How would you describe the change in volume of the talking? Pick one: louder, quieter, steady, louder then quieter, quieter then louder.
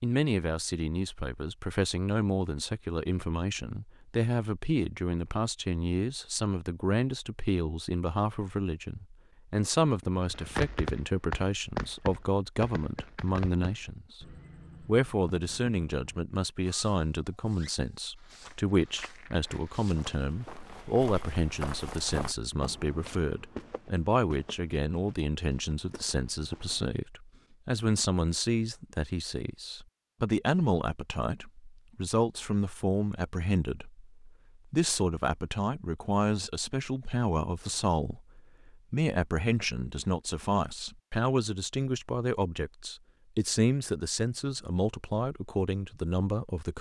steady.